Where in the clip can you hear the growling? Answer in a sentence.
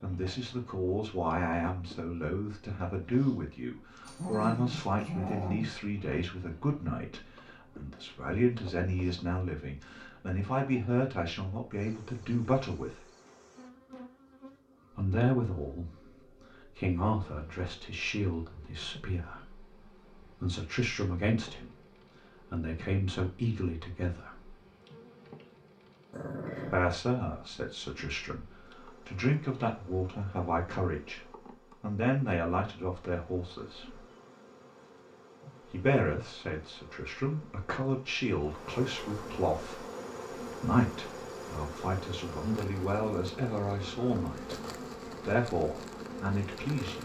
The growling can be heard from 4.0 to 5.7 s and from 26.1 to 26.9 s.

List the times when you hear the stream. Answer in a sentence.
The stream can't be heard in this clip.